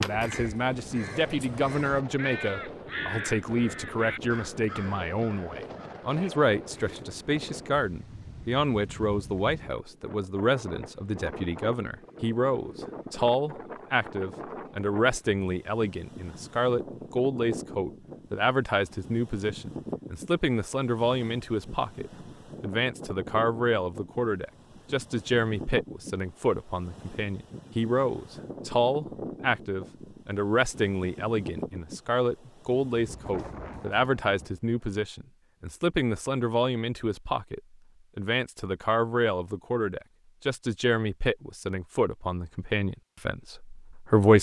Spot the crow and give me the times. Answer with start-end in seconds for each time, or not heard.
0.0-7.0.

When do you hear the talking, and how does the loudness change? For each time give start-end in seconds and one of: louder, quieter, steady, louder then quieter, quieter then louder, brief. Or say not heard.
0.0-44.3 steady.